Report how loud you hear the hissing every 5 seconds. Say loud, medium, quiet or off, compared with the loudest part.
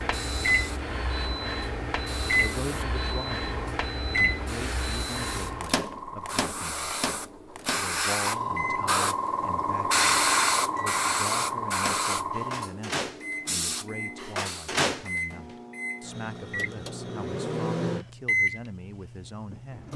quiet, loud, loud, off.